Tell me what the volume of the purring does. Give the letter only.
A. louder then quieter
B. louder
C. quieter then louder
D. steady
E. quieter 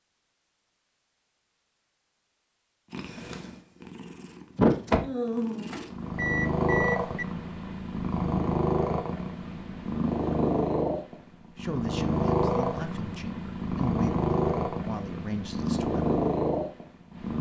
D.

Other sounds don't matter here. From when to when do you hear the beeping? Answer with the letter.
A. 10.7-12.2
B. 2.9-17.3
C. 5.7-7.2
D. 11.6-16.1
C.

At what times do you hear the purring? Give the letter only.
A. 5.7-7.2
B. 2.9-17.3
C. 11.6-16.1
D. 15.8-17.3
B.